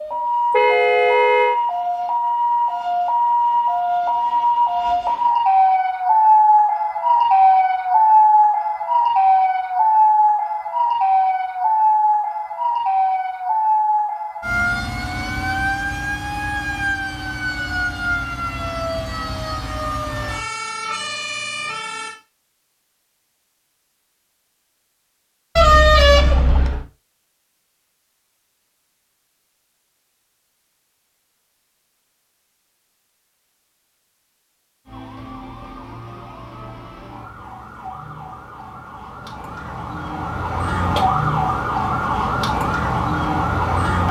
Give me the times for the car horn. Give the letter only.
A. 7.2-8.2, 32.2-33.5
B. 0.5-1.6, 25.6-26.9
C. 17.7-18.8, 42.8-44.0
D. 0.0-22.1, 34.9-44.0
B.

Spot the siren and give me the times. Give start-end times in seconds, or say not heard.
0.0-22.1, 34.9-44.0.